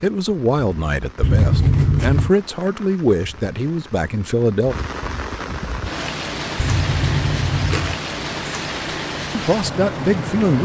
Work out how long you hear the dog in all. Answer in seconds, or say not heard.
not heard.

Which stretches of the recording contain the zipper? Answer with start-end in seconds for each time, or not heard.
1.2-2.3, 6.5-8.0.